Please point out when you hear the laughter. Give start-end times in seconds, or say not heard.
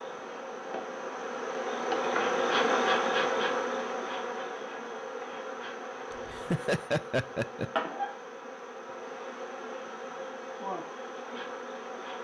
6.1-7.7.